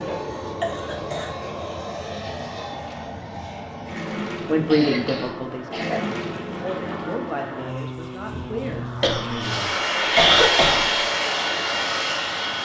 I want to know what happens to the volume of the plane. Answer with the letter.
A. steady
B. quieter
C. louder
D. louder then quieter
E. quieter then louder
C.